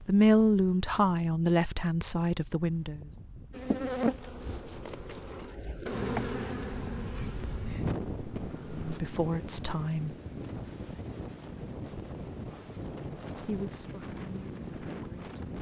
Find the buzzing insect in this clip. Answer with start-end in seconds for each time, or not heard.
3.5-9.0.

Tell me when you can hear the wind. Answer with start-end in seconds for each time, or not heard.
0.0-15.5.